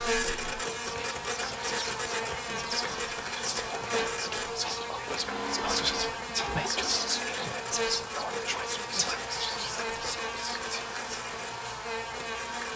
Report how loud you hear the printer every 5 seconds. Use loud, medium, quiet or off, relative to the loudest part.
loud, loud, medium.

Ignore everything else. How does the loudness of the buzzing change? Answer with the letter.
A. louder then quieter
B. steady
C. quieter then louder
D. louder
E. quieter
B.